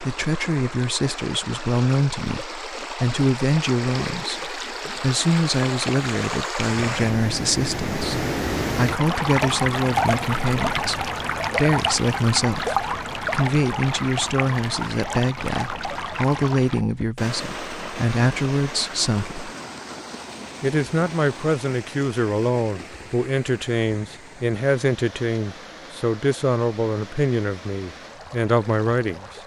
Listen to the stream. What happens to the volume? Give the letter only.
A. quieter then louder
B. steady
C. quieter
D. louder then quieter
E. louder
D.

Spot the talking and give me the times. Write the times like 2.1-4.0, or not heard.
0.0-19.5, 20.6-29.4.